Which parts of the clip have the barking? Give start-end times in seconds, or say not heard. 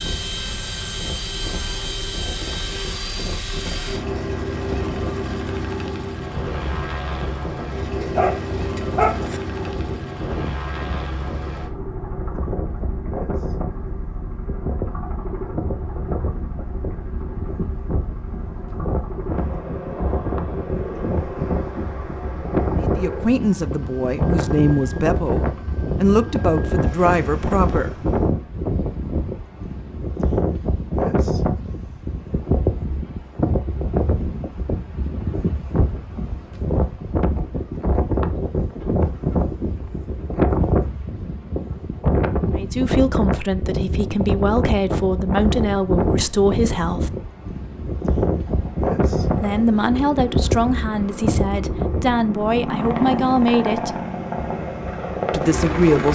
8.0-9.4.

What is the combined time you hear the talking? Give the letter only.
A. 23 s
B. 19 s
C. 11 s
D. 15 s
D.